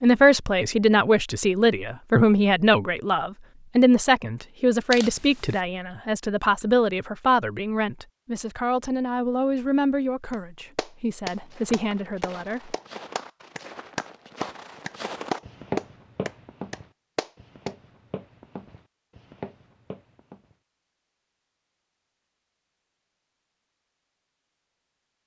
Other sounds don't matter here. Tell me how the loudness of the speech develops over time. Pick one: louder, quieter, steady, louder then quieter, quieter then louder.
quieter.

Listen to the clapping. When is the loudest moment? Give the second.
16 s.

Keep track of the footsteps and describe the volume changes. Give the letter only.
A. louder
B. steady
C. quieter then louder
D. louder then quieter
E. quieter
D.